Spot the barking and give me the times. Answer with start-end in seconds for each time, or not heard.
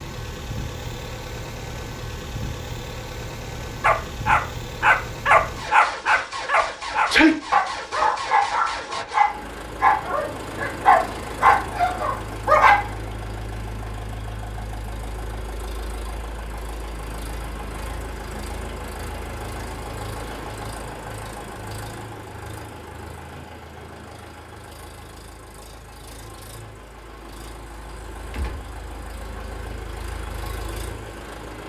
3.8-12.8.